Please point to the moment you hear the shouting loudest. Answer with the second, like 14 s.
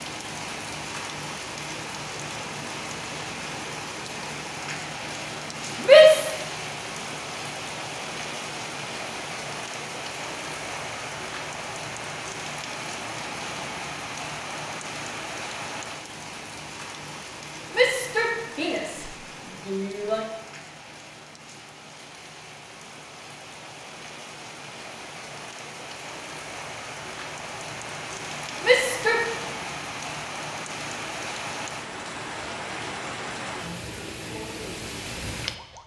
6 s.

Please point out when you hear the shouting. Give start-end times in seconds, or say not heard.
5.8-6.3, 17.7-20.2, 28.6-29.2.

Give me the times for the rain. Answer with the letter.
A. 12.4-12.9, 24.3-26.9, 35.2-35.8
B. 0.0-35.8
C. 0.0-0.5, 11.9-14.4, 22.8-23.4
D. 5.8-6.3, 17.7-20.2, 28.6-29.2
B.